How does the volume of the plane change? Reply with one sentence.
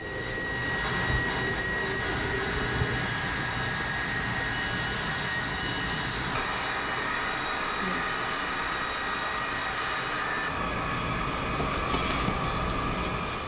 The volume of the plane stays about the same.